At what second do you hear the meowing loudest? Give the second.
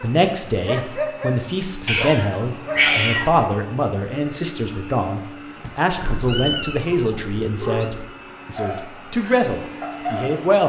3 s.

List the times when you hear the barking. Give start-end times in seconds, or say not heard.
0.0-3.4, 8.6-10.5.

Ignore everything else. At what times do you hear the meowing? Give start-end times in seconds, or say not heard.
1.9-3.3, 6.0-7.9.